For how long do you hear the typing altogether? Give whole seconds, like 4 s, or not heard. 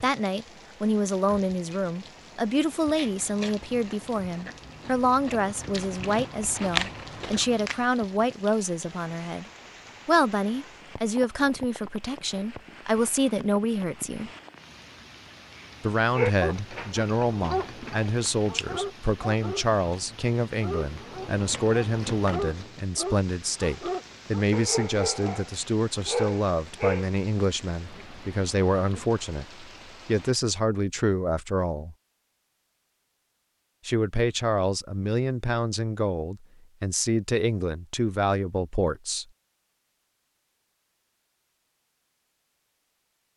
not heard.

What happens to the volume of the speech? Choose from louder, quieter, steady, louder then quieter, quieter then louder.
steady.